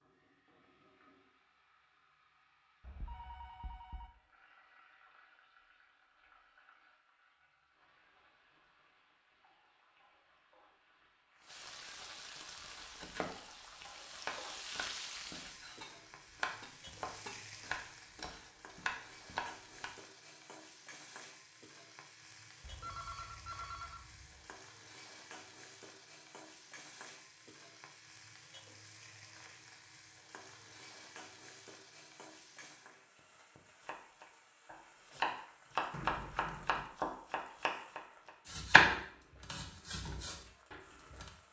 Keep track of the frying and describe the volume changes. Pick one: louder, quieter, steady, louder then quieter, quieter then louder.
louder then quieter.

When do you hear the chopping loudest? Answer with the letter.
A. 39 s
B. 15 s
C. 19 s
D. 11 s
A.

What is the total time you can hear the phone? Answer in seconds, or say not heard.
4 s.